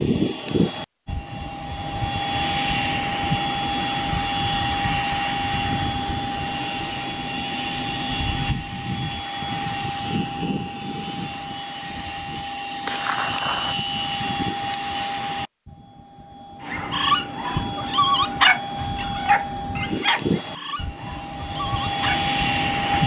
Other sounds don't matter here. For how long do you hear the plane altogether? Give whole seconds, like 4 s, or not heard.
23 s.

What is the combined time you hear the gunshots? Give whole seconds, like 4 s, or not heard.
2 s.